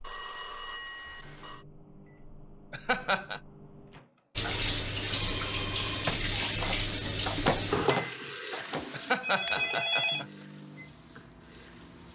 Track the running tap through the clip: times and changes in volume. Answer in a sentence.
You can hear the running tap from 4.3 to 12.1 s, getting quieter.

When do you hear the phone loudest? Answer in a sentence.
The loudest moment of the phone is at 10 seconds.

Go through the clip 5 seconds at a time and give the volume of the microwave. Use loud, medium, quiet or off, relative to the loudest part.
quiet, loud, quiet.